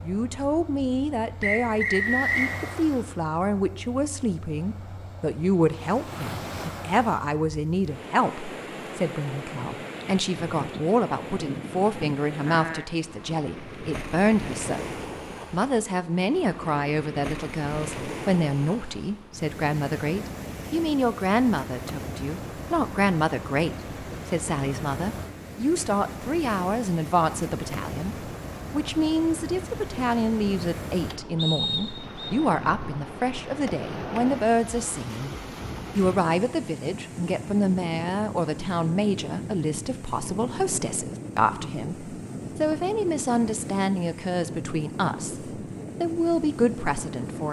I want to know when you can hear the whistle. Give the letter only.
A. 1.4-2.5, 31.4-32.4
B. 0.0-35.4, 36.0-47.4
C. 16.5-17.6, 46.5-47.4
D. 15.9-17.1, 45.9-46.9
A.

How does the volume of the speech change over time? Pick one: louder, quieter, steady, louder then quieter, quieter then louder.
steady.